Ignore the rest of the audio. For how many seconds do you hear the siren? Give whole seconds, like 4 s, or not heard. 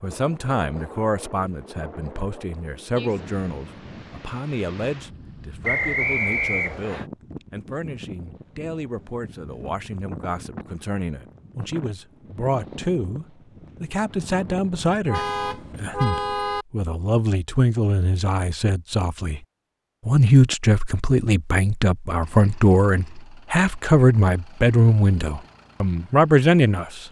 not heard.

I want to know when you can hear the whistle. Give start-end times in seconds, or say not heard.
5.6-7.0.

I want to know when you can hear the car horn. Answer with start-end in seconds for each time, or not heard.
15.1-16.6.